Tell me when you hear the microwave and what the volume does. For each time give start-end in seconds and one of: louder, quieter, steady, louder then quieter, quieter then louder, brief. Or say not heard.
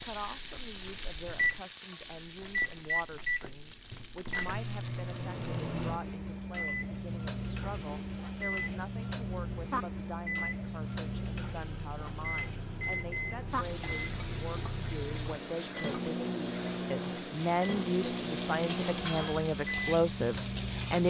0.0-21.0 steady.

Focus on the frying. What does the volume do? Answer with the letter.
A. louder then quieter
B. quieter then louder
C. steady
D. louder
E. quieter
B.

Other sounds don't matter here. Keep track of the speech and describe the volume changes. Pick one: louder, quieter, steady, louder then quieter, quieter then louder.
louder.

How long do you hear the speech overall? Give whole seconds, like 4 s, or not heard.
21 s.